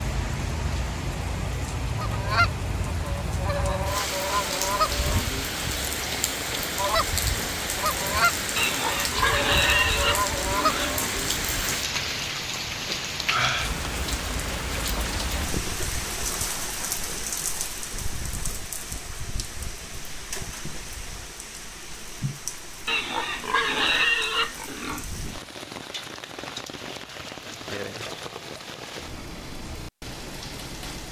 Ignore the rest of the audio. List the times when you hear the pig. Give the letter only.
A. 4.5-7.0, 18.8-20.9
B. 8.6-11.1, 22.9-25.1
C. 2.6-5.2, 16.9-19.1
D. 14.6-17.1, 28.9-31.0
B.